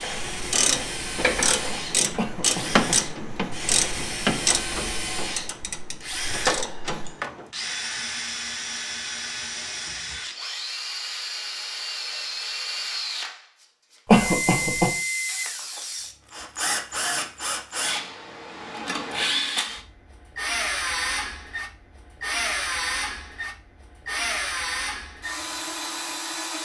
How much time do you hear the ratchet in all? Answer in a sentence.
You can hear the ratchet for 8 seconds altogether.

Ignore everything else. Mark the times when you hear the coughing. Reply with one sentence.
The coughing can be heard from 2.1 to 3.0 s and from 14.1 to 14.9 s.